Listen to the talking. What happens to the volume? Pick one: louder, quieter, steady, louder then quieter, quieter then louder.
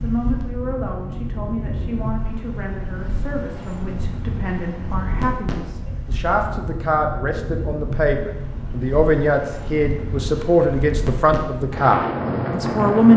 louder.